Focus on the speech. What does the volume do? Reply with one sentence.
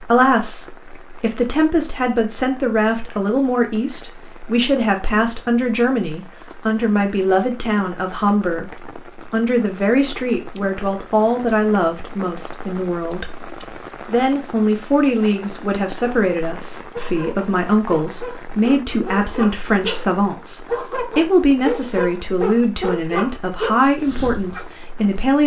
The volume of the speech stays about the same.